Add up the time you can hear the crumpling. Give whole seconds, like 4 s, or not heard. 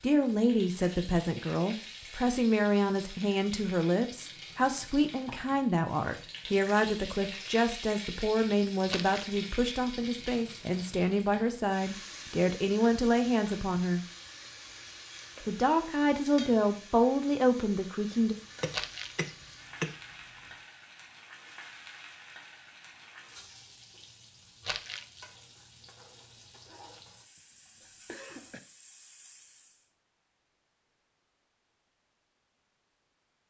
2 s.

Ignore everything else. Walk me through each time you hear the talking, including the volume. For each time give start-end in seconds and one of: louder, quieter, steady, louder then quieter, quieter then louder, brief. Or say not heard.
0.0-14.1 steady
15.4-18.4 brief.